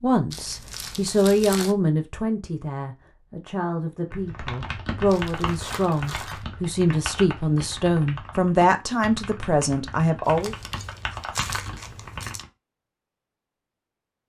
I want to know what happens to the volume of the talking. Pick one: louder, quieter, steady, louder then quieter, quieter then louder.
quieter then louder.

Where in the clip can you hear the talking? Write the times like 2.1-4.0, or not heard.
0.0-10.6.